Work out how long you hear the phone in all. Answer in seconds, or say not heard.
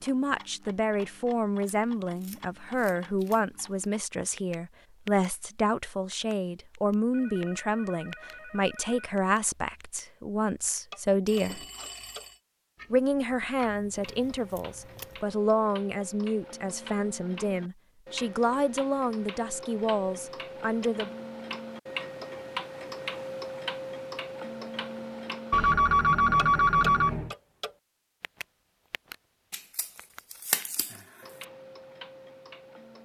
5 s.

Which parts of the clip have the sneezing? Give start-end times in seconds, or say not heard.
not heard.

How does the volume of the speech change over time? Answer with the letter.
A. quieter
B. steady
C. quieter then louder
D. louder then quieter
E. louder
B.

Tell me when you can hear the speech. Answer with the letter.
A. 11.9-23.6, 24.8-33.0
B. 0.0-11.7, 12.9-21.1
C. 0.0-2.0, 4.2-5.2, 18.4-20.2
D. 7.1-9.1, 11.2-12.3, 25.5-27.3
B.